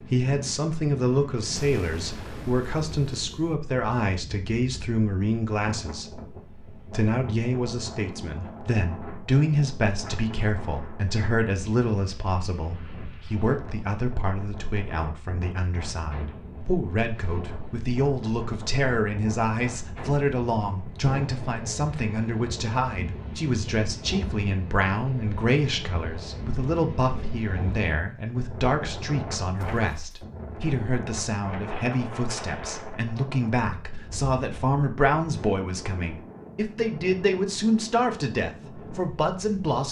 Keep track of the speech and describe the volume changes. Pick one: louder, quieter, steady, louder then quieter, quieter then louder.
steady.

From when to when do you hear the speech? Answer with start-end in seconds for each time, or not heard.
0.0-39.8.